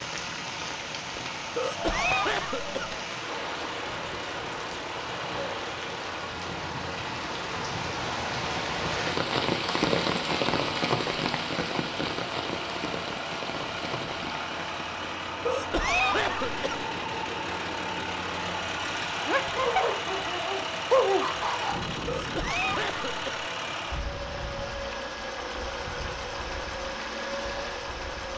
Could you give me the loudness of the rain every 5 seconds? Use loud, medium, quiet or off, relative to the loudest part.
medium, loud, loud, off, off, off.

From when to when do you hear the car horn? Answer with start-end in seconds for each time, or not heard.
not heard.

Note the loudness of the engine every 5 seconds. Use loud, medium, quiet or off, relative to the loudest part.
medium, medium, loud, loud, loud, loud.